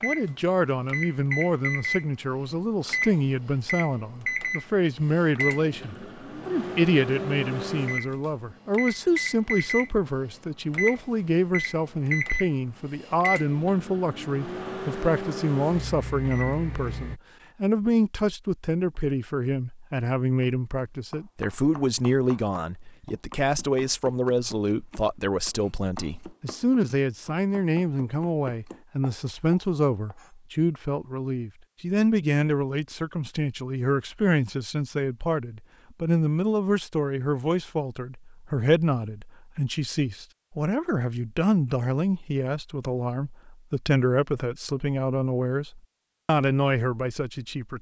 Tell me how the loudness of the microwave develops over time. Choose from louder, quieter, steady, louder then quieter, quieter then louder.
steady.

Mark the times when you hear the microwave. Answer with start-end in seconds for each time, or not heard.
0.0-17.2.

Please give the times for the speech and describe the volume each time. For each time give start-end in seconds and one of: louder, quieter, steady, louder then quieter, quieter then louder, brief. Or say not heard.
0.0-47.7 steady.